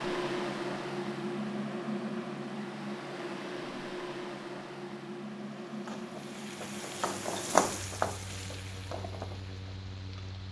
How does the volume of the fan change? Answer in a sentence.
The volume of the fan goes down.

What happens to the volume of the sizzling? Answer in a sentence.
The loudness of the sizzling goes up, then down.